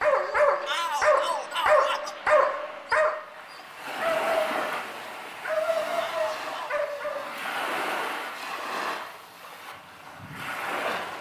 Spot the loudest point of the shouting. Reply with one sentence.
The volume of the shouting peaks at 1 second.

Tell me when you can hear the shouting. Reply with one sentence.
The shouting can be heard from 0.7 to 2.2 s and from 6.0 to 6.7 s.